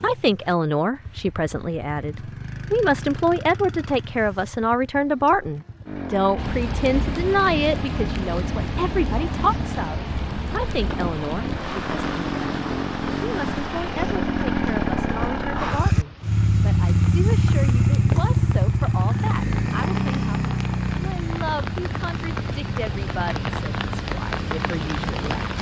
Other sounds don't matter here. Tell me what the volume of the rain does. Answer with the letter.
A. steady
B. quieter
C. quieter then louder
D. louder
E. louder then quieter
C.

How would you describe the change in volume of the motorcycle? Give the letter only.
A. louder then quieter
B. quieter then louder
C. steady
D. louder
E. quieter
A.